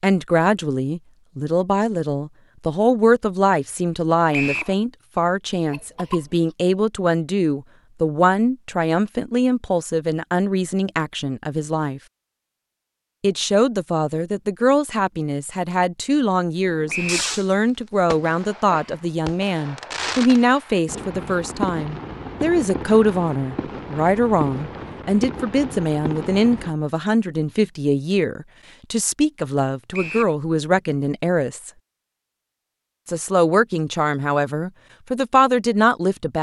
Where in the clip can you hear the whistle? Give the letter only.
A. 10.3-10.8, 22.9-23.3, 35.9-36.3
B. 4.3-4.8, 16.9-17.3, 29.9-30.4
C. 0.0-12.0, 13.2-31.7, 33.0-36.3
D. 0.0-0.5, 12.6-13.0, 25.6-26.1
B.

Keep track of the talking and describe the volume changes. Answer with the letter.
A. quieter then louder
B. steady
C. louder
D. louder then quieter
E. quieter
B.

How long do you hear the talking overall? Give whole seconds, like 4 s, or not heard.
34 s.